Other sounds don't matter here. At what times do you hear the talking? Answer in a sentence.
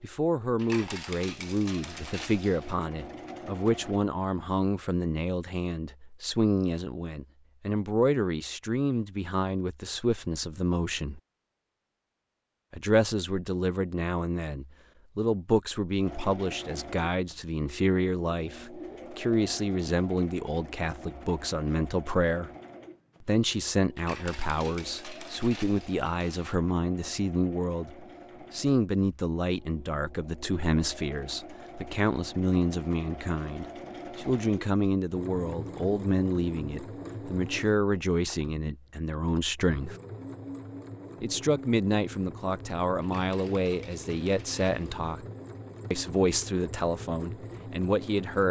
The talking can be heard from 0.0 to 11.2 s, from 12.7 to 22.5 s, from 23.2 to 40.0 s, from 41.2 to 45.2 s and from 45.9 to 48.4 s.